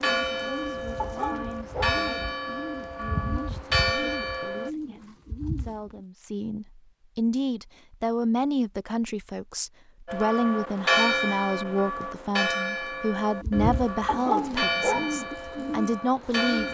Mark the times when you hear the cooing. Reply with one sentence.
You can hear the cooing from 0.0 to 6.0 s and from 13.4 to 16.6 s.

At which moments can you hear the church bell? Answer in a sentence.
You can hear the church bell from 0.0 to 4.7 s and from 10.1 to 16.6 s.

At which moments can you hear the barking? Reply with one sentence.
You can hear the barking from 0.9 to 2.0 s and from 14.1 to 15.2 s.